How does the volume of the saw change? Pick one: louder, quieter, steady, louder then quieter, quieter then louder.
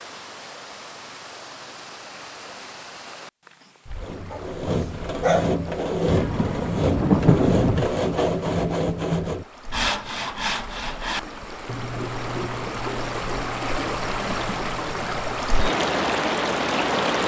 quieter.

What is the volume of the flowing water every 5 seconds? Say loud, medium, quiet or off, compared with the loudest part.
quiet, quiet, medium, loud.